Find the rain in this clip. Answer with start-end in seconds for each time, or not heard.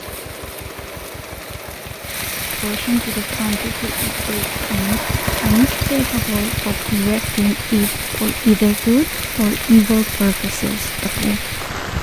0.0-11.9.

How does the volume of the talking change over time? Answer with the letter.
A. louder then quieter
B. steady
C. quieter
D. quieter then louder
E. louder
E.